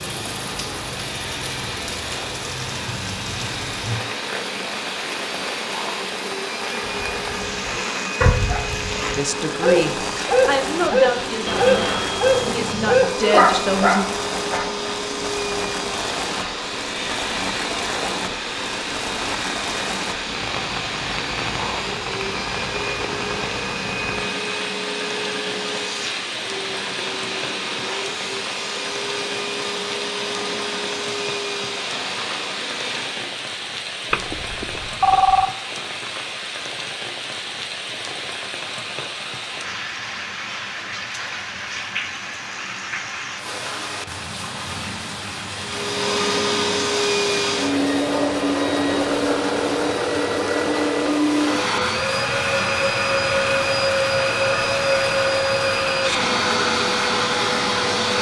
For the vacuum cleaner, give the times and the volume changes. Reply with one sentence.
You can hear the vacuum cleaner from 0.0 to 33.4 s, at a steady volume; and from 45.5 to 58.1 s, at a steady volume.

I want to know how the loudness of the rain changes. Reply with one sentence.
The loudness of the rain stays about the same.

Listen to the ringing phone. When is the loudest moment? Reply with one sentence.
The loudest moment of the ringing phone is at 35 seconds.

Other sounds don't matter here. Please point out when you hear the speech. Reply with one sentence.
The speech can be heard from 9.1 to 14.1 s.